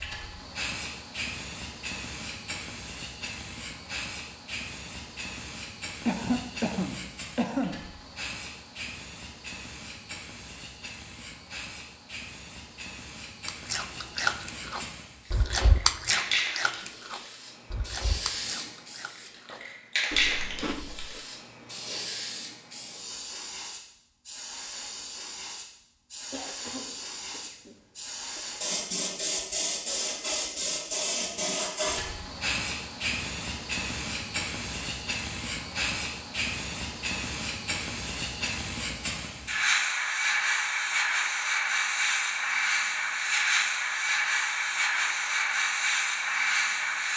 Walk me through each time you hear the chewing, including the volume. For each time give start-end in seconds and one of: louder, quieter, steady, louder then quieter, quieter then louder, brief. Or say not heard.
13.4-21.2 quieter.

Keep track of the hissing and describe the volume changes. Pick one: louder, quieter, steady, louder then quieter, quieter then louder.
louder.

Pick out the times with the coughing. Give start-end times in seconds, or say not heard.
6.0-7.8, 26.3-28.6.